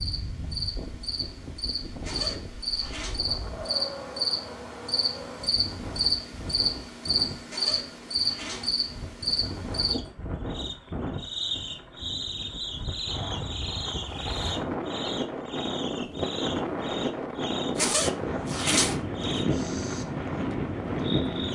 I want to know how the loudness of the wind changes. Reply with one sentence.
The volume of the wind goes up.